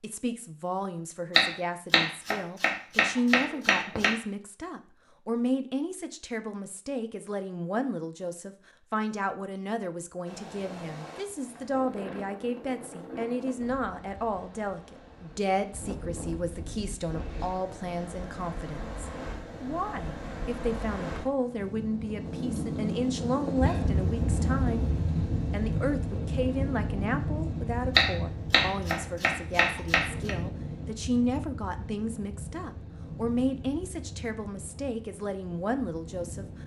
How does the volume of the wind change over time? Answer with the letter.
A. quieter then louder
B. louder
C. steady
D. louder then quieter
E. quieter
D.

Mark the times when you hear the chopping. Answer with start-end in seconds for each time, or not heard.
1.4-4.2, 27.9-30.4.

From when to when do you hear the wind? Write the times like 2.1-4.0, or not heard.
10.2-36.6.